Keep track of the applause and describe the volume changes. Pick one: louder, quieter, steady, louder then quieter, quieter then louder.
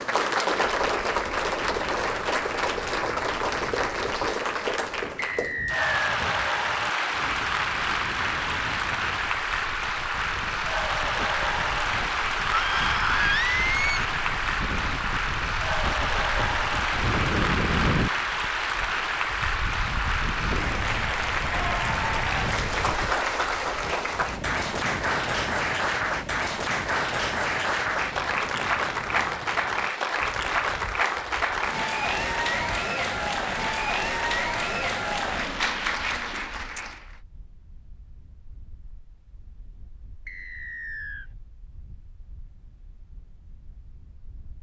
steady.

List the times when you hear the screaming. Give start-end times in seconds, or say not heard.
12.5-14.1.